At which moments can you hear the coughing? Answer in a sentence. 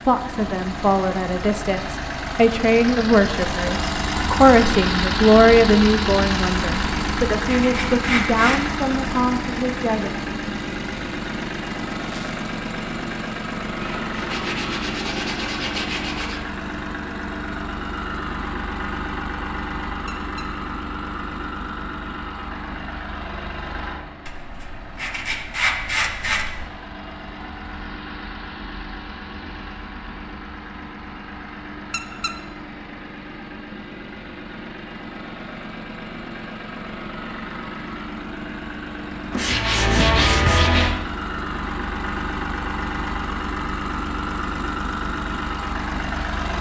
You can't hear the coughing here.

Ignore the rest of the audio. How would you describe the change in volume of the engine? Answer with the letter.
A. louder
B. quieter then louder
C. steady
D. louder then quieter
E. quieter
B.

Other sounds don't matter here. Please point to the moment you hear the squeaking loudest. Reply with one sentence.
The volume of the squeaking peaks at 32 seconds.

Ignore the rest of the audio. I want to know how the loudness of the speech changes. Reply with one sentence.
The volume of the speech goes up, then down.